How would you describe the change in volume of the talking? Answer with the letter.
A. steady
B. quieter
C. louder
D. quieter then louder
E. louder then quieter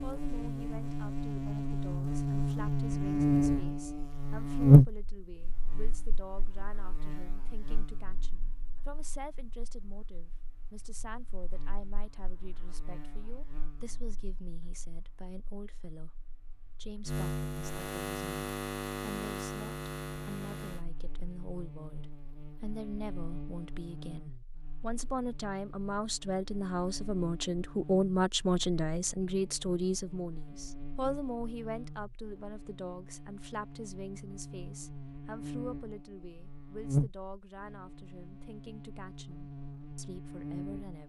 E.